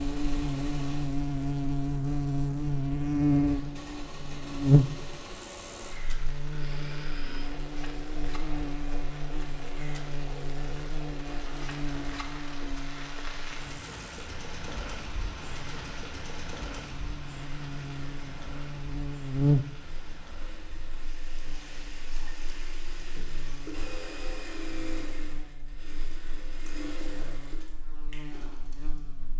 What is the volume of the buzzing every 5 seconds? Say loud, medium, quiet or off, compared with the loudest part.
loud, quiet, quiet, medium, quiet, quiet.